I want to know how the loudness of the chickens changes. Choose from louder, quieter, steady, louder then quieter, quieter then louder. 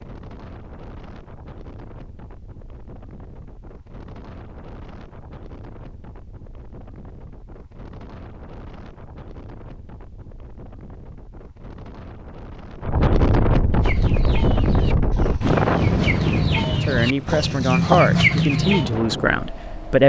louder.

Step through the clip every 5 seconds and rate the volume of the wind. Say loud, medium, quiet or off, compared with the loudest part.
quiet, quiet, loud, loud.